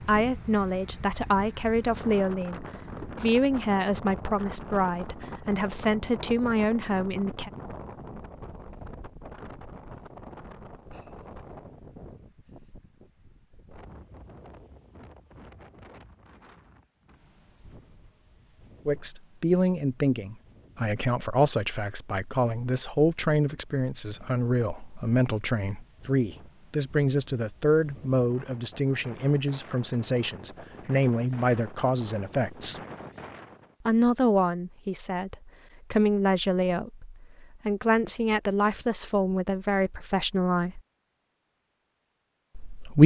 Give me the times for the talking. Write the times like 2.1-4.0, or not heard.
0.0-7.5, 18.9-32.8, 33.9-40.8, 42.5-43.0.